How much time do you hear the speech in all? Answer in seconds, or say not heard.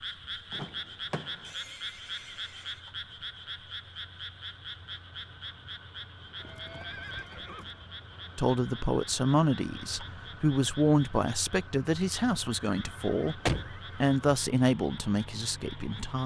8 s.